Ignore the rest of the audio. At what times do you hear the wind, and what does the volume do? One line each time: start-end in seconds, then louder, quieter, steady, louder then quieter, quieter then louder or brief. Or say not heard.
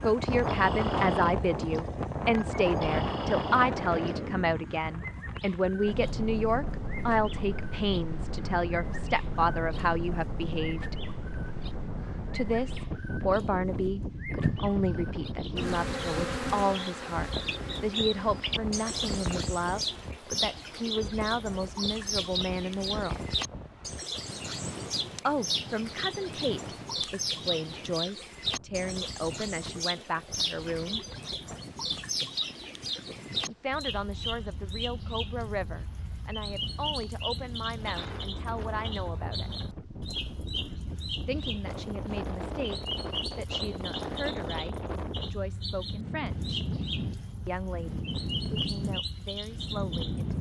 0.0-50.3 quieter then louder.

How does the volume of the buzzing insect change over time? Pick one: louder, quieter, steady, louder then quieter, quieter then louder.
louder then quieter.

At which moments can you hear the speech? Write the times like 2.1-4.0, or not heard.
0.0-10.9, 12.3-23.2, 25.2-31.0, 33.5-39.5, 41.2-46.6, 47.5-50.2.